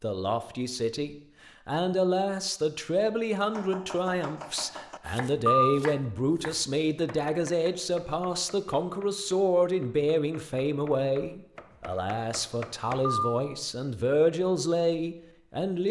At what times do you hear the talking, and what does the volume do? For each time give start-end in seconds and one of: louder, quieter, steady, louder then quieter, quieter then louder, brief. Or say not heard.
0.0-15.8 steady.